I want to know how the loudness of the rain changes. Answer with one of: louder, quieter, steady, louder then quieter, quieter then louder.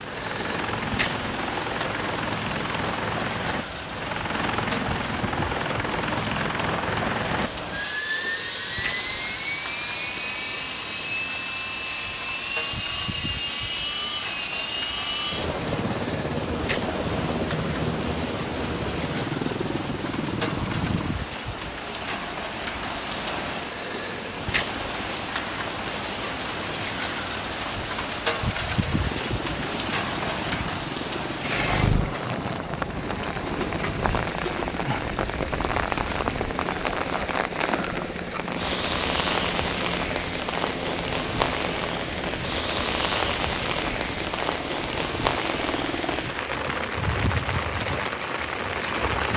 louder.